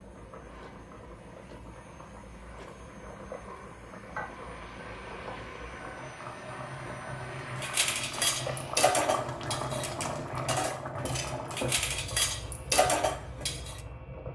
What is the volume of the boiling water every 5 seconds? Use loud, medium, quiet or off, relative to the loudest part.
medium, loud, loud.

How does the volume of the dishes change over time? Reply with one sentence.
The loudness of the dishes goes down, then up.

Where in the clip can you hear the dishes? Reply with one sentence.
The dishes can be heard from 7.6 to 13.8 s.